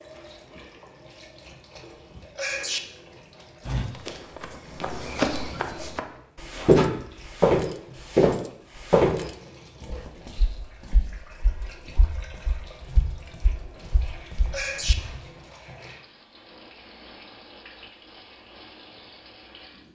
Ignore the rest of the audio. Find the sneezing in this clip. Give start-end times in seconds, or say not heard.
2.4-2.8, 14.5-14.9.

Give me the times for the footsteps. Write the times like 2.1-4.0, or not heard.
3.6-15.1.